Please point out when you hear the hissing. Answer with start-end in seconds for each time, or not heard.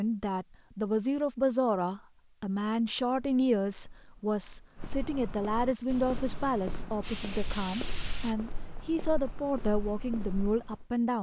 5.8-8.3.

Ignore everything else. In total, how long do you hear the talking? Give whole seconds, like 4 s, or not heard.
11 s.